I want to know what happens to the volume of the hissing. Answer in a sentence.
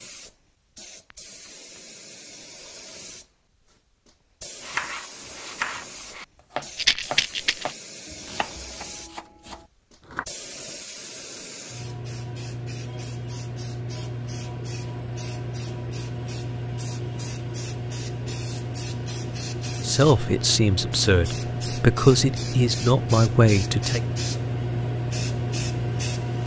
The volume of the hissing goes up.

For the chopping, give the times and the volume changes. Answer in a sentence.
You can hear the chopping from 4.6 to 10.2 s, getting quieter.